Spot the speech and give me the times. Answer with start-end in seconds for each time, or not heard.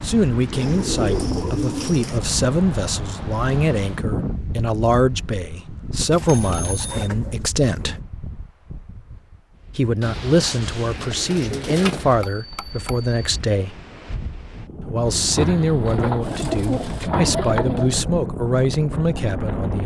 0.0-8.0, 9.8-13.8, 14.9-19.8.